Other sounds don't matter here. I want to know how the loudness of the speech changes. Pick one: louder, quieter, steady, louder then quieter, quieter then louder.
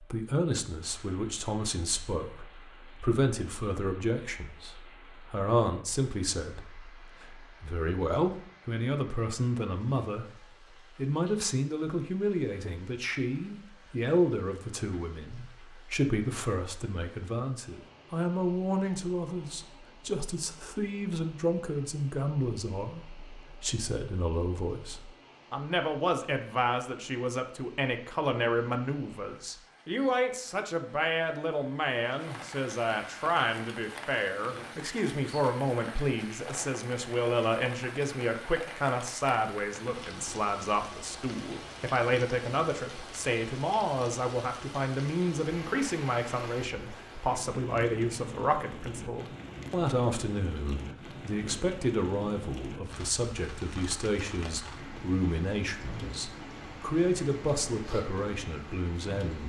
steady.